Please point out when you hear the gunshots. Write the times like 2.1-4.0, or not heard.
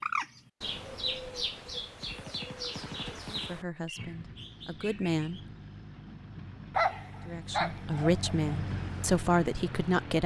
1.8-3.6.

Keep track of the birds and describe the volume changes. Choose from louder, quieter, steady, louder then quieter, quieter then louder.
quieter.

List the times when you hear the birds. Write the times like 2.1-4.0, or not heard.
0.0-5.5.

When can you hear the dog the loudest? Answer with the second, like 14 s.
7 s.